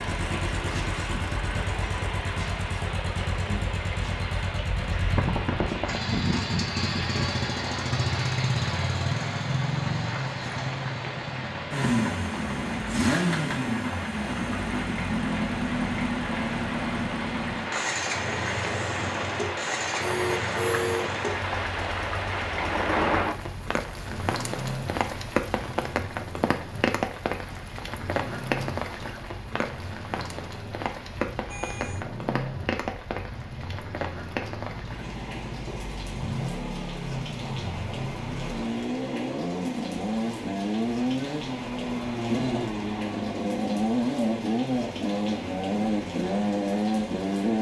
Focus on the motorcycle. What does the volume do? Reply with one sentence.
The volume of the motorcycle goes down, then up.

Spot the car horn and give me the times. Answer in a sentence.
You can hear the car horn from 20.0 to 21.1 s and from 31.4 to 32.0 s.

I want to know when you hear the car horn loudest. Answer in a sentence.
The loudest moment of the car horn is at 21 seconds.